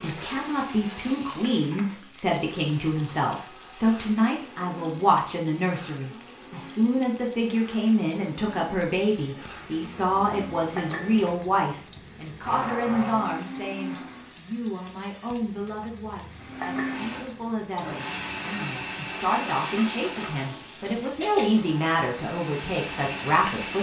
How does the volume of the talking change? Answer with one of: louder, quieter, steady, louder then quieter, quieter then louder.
quieter then louder.